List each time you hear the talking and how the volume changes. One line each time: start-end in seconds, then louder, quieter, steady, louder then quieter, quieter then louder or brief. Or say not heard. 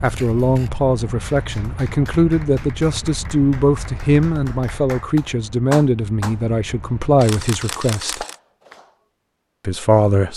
0.0-8.2 steady
9.7-10.3 brief.